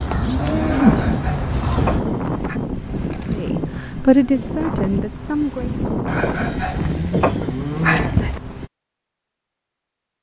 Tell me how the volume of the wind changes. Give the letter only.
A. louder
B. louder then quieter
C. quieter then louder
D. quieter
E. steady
E.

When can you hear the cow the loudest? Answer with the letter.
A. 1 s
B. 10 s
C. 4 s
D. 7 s
A.